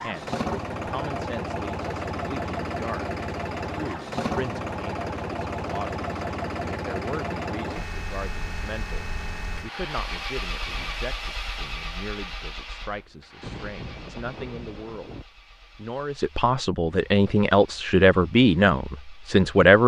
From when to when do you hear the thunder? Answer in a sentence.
You can hear the thunder from 13.4 to 15.2 s.